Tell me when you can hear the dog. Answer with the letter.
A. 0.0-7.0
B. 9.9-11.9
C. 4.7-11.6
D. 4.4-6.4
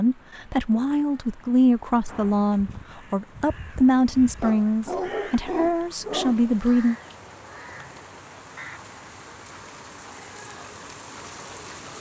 D.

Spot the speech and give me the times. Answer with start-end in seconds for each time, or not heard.
0.0-7.0.